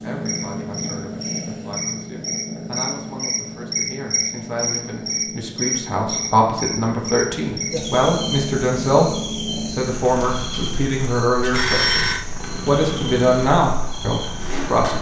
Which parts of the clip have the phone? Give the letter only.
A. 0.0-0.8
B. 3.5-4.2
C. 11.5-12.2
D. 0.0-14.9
C.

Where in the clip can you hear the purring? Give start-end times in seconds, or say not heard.
0.0-14.9.